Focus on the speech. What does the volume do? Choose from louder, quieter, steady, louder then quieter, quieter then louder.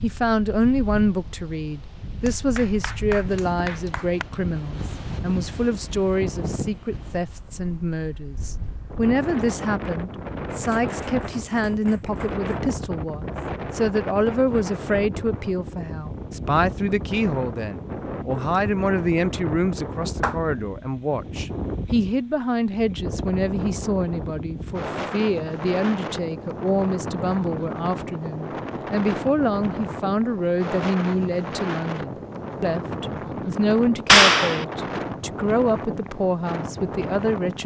steady.